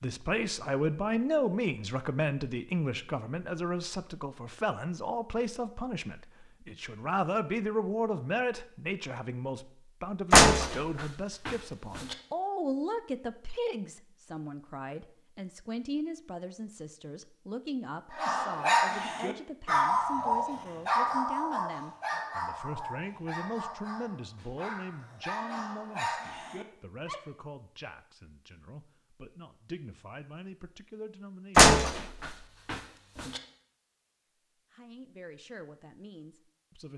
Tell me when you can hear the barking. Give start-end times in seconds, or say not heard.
18.1-27.2.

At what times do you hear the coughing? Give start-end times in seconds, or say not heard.
not heard.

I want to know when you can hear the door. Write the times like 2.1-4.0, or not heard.
10.3-12.2, 31.6-33.4.